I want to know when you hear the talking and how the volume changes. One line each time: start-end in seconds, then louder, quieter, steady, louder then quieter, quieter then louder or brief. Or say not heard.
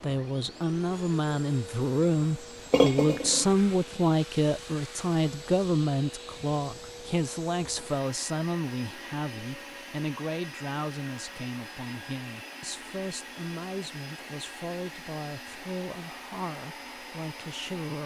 0.0-18.0 quieter.